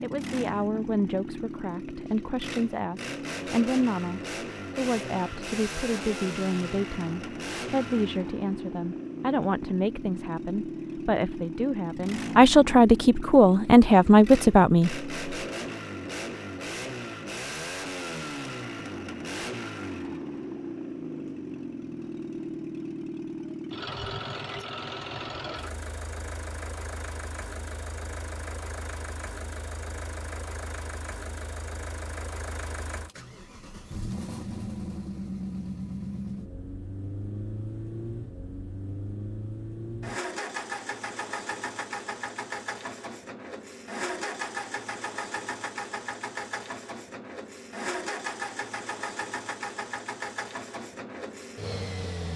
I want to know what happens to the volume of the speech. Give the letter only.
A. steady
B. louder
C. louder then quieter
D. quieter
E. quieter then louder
B.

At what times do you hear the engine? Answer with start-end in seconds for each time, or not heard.
0.0-52.3.